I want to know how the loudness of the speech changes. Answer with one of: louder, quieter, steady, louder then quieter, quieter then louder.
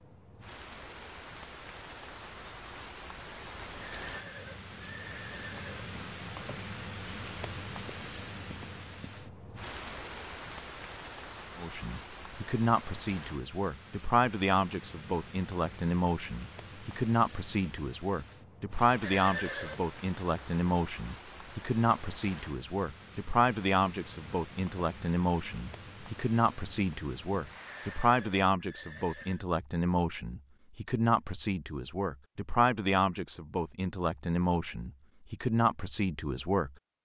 steady.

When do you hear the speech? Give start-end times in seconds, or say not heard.
11.6-37.0.